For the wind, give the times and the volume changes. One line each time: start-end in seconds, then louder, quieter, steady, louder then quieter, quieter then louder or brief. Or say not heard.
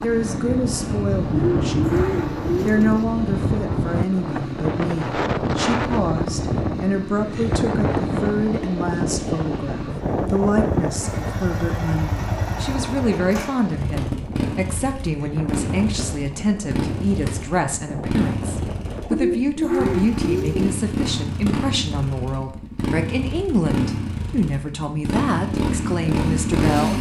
0.0-19.2 quieter.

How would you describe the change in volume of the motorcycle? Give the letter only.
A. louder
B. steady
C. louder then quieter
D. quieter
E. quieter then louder
A.